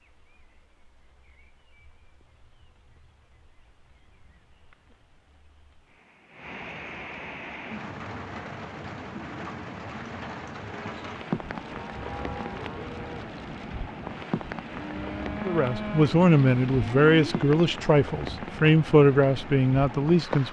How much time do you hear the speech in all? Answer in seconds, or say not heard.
5 s.